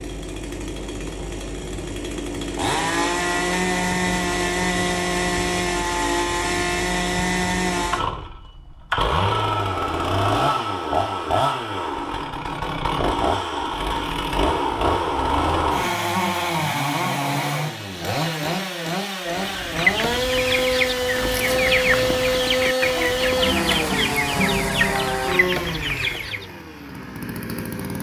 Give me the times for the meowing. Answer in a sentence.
The meowing can't be heard in this clip.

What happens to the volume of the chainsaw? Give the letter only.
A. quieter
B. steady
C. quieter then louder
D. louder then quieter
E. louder
B.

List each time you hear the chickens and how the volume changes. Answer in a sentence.
The chickens can be heard from 19.2 to 26.4 s, at a steady volume.